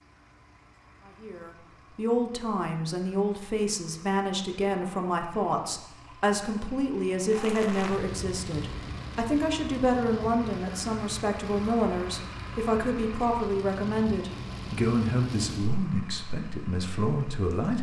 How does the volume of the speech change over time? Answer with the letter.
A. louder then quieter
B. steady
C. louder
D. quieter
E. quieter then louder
B.